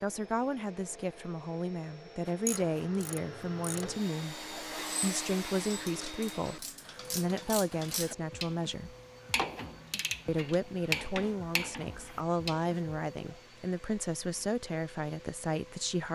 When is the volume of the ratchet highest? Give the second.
11 s.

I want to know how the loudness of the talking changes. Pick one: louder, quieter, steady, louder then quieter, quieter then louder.
steady.